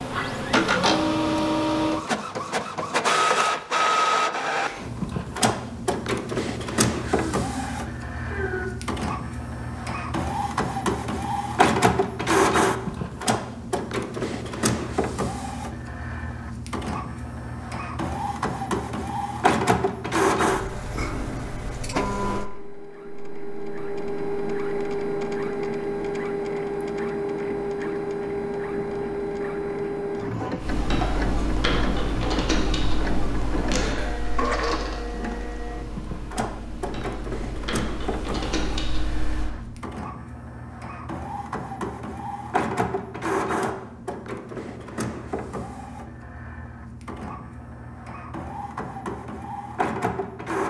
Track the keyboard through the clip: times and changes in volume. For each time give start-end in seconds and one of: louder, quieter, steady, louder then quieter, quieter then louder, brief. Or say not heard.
30.6-39.5 quieter then louder.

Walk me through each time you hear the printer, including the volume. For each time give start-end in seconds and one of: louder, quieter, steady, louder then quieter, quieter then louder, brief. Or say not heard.
0.0-50.6 quieter.